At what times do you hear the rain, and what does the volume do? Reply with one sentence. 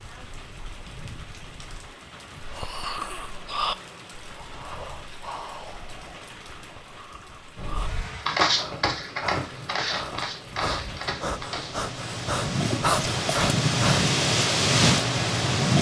You can hear the rain from 0.0 to 15.7 s, getting louder.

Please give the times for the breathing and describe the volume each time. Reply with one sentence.
The breathing can be heard from 2.4 to 14.1 s, getting quieter then louder.